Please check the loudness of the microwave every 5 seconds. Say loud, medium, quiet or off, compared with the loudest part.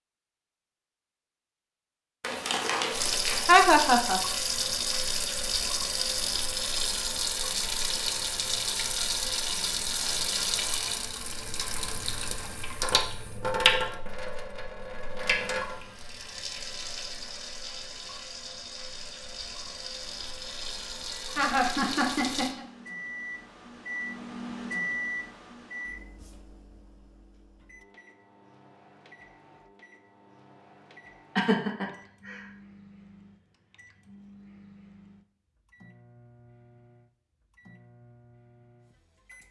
off, off, off, off, loud, medium, quiet, quiet.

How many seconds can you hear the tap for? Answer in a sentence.
You can hear the tap for 20 seconds altogether.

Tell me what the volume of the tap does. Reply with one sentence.
The loudness of the tap goes down.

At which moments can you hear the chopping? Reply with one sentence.
You can't hear the chopping here.